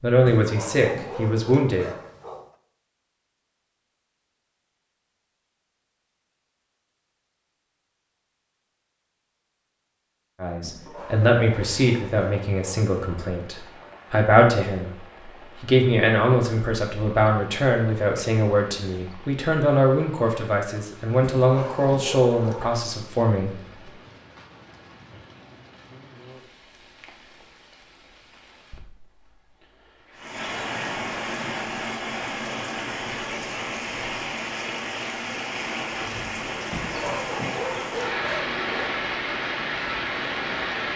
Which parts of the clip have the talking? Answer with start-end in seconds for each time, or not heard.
0.0-1.9, 10.4-23.6.